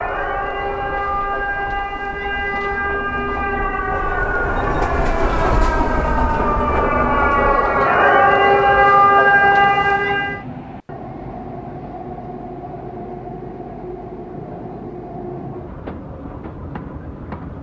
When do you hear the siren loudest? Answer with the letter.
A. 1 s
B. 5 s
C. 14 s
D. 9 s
D.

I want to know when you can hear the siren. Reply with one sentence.
You can hear the siren from 0.0 to 10.4 s.